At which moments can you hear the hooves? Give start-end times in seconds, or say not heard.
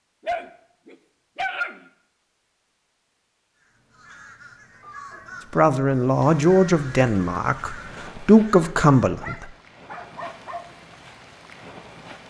not heard.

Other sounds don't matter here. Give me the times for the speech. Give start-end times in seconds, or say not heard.
5.5-9.4.